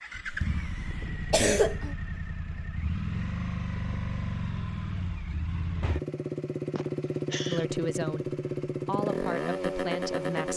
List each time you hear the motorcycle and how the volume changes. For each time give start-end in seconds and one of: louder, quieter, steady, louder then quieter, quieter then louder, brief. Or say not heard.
0.0-10.5 louder.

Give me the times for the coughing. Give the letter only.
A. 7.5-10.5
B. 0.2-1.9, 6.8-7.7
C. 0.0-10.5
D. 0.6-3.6
B.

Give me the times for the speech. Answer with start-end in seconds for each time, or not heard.
7.5-10.5.